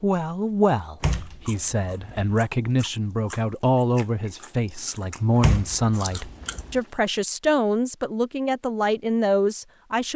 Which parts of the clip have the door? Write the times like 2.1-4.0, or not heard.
1.0-2.4, 5.4-6.8.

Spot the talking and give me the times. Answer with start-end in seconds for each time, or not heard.
0.0-10.1.